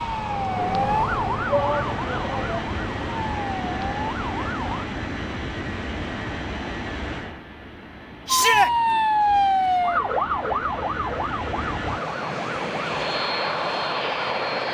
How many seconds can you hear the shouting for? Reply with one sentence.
You can hear the shouting for 2 seconds altogether.